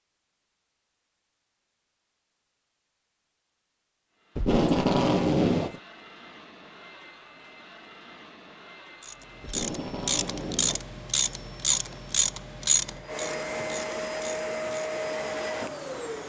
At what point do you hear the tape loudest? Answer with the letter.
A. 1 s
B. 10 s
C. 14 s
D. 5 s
D.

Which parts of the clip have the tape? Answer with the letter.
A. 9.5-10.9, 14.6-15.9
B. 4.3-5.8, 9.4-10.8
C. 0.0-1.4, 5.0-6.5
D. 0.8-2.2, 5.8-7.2
B.